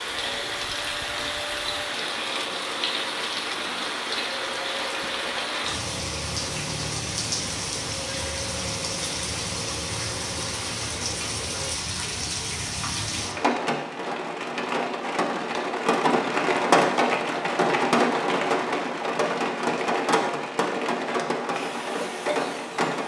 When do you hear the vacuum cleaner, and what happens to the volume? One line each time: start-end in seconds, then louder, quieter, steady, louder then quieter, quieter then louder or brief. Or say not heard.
0.0-11.8 steady
21.5-22.9 brief.